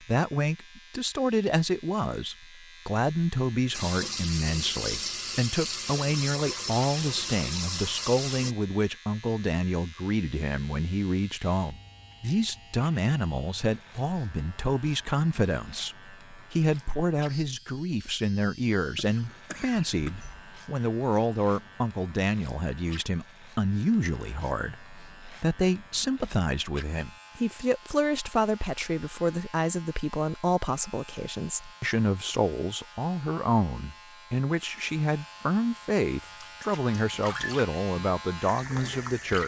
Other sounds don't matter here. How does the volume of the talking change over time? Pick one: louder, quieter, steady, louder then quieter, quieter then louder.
steady.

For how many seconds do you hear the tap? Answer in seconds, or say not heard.
8 s.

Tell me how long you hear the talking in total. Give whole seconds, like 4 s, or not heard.
39 s.